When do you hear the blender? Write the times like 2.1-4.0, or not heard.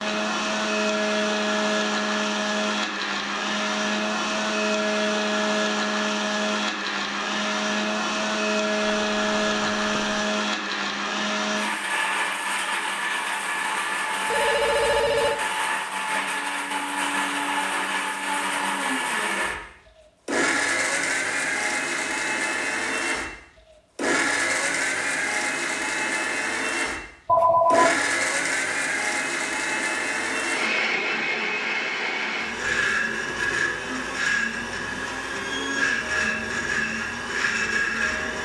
0.0-38.4.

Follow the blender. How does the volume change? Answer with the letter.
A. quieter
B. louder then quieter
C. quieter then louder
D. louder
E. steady
E.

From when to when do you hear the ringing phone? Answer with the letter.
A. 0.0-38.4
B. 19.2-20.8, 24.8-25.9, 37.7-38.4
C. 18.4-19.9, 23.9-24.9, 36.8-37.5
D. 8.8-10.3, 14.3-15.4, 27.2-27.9
D.